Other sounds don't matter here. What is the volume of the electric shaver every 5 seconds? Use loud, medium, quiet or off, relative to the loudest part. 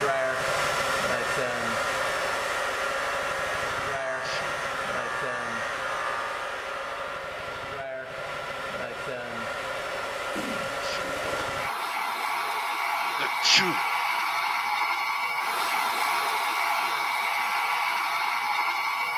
loud, loud, off, off.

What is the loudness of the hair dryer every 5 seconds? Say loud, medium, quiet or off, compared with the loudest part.
loud, medium, loud, loud.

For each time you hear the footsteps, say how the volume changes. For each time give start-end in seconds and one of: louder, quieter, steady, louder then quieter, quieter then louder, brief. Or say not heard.
not heard.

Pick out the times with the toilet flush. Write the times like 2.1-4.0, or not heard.
10.3-11.6.